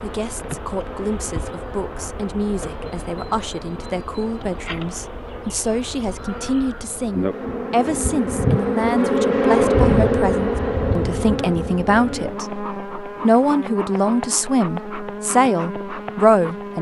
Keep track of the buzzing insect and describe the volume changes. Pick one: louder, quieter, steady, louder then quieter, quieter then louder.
louder then quieter.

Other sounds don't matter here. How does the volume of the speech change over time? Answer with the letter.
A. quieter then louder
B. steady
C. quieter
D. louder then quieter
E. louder
E.